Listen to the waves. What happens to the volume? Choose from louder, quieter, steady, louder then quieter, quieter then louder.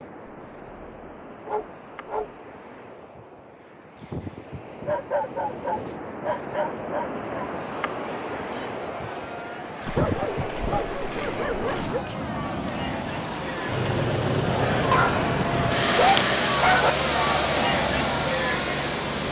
louder.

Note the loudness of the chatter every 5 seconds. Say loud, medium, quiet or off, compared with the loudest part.
off, quiet, medium, loud.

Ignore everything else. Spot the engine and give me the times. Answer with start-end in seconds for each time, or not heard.
13.7-19.2.